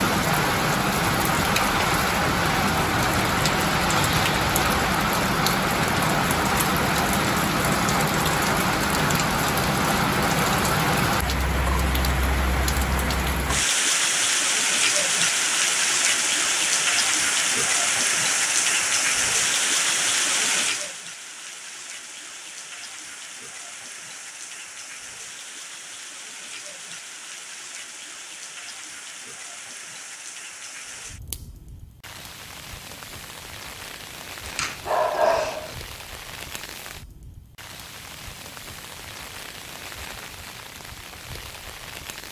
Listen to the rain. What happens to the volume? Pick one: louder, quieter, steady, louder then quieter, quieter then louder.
quieter.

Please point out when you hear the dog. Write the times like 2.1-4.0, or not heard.
34.5-35.8.